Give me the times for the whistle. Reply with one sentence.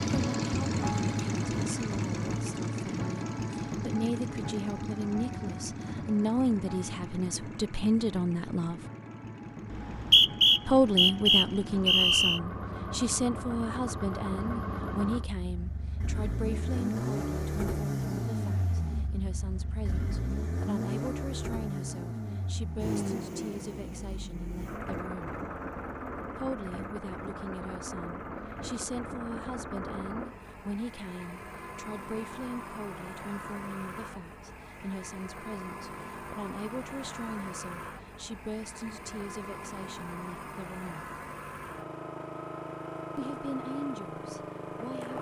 You can hear the whistle from 9.7 to 12.4 s.